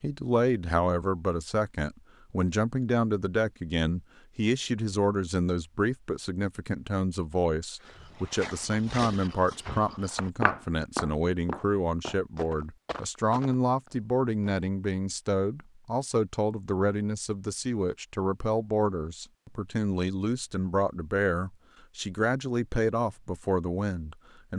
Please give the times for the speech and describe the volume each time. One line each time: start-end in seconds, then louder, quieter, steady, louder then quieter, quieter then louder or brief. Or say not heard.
0.0-24.5 steady.